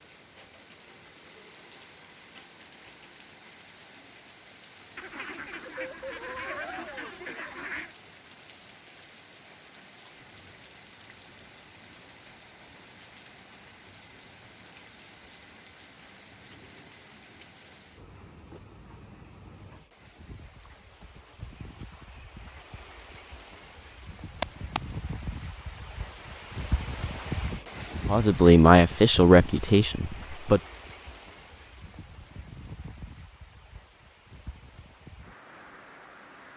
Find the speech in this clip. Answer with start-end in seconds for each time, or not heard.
28.1-30.6.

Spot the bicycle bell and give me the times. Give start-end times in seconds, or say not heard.
24.4-24.8.